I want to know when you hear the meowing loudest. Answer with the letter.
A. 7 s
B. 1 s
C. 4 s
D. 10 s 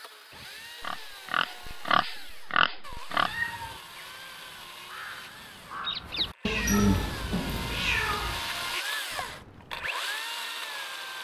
A.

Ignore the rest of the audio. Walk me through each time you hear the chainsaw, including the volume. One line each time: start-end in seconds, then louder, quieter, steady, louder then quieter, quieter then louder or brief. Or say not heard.
0.0-11.1 louder.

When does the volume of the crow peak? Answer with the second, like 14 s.
6 s.